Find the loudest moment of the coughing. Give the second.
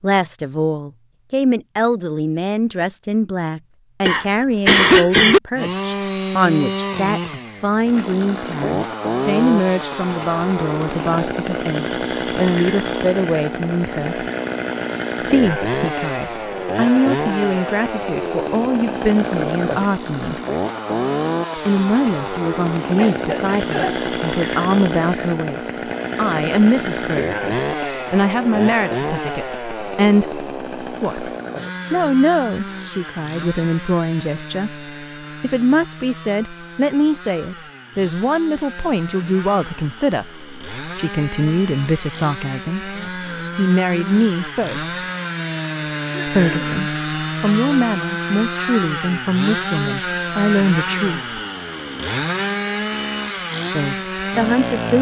5 s.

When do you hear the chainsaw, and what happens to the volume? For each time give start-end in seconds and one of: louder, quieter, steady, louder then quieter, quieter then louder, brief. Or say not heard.
5.5-54.9 quieter then louder.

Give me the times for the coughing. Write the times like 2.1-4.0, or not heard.
4.0-5.4, 22.9-24.1, 46.0-46.8.